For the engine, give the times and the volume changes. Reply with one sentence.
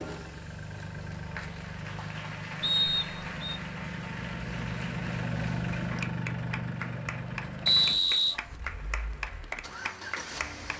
You can hear the engine from 0.0 to 10.7 s, getting louder then quieter.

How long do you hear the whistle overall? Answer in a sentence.
You can hear the whistle for 2 seconds altogether.